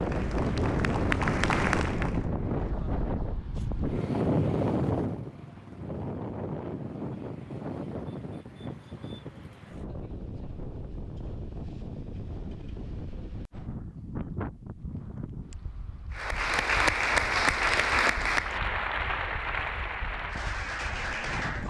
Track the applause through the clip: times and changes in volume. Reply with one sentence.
The applause can be heard briefly from 0.0 to 2.2 s; and from 16.1 to 21.6 s, getting quieter.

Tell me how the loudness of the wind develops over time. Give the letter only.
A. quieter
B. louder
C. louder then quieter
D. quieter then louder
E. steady
A.